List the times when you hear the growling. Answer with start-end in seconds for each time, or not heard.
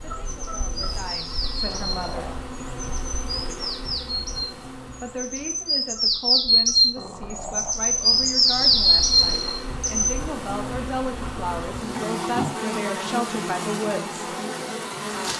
1.6-2.5, 7.0-8.3, 12.2-12.6.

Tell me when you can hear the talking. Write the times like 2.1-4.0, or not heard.
0.0-2.2, 5.0-14.2.